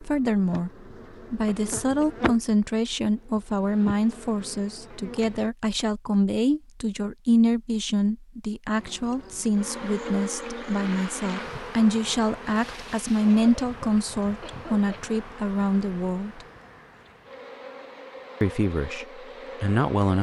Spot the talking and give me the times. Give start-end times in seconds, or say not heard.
0.0-0.7, 1.3-16.4, 18.4-20.1.